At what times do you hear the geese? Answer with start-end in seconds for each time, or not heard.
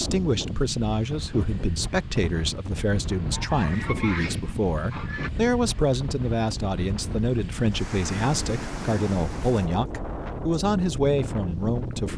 3.3-5.3.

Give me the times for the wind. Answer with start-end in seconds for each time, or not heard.
0.0-12.1.